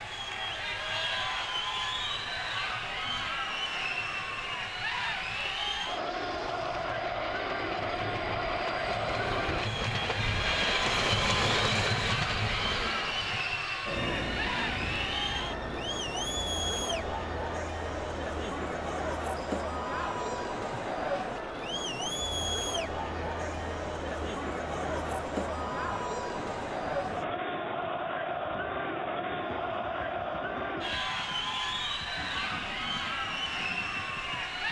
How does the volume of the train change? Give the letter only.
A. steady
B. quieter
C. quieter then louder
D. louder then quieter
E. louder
D.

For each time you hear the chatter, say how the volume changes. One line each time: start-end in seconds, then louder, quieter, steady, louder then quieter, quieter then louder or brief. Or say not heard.
0.0-34.6 steady.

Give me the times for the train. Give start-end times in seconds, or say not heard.
0.0-34.6.